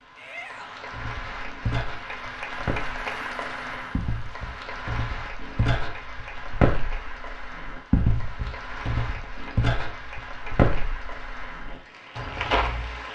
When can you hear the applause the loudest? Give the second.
3 s.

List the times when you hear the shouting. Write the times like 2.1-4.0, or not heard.
0.1-0.9.